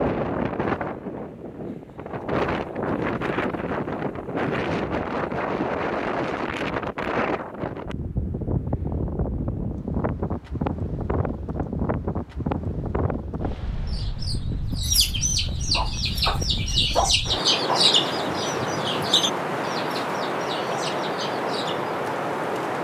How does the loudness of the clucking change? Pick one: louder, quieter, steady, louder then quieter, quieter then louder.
quieter.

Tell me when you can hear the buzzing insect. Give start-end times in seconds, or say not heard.
not heard.